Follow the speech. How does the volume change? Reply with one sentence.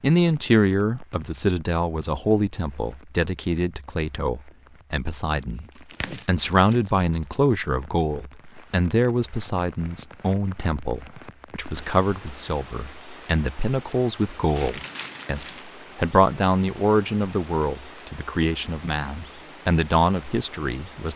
The volume of the speech stays about the same.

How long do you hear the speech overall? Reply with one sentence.
The speech can be heard for 21 seconds in total.